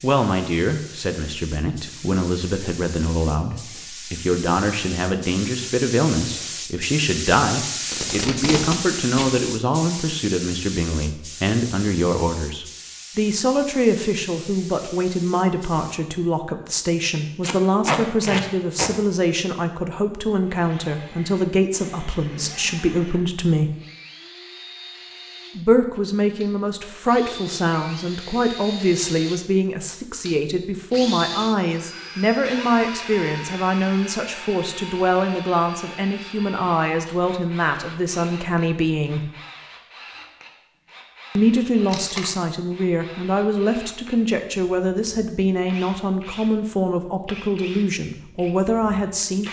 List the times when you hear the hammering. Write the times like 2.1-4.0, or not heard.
not heard.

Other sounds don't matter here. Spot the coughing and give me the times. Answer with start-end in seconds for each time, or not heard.
not heard.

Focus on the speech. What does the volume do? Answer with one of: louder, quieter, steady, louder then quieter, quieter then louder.
steady.